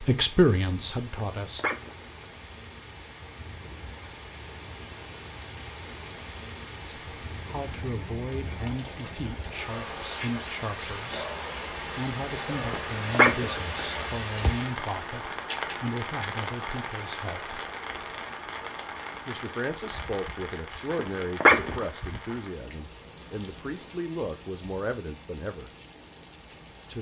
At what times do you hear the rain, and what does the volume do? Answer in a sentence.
You can hear the rain from 0.0 to 26.9 s, getting louder then quieter.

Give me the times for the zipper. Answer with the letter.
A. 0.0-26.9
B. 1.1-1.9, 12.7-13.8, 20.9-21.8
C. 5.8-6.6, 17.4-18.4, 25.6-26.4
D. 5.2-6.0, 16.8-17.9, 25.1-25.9
B.